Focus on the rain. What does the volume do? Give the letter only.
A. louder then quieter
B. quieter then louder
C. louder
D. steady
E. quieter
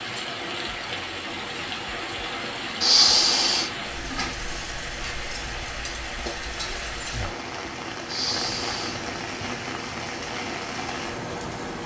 D.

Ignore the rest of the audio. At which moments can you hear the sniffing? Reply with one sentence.
You can hear the sniffing from 2.8 to 3.7 s and from 8.1 to 9.0 s.